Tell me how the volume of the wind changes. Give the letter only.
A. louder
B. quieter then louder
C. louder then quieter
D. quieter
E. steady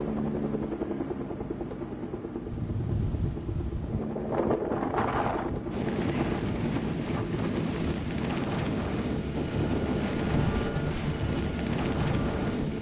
E.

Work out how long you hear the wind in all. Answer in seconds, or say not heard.
10 s.